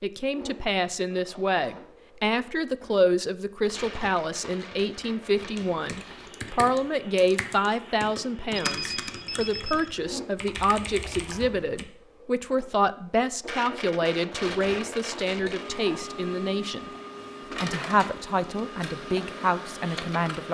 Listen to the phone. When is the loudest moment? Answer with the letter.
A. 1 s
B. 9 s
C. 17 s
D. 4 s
B.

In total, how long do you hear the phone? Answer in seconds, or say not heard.
2 s.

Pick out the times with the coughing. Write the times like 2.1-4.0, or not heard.
not heard.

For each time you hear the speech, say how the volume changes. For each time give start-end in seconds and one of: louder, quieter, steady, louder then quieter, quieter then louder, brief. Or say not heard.
0.0-16.9 steady
17.6-20.5 brief.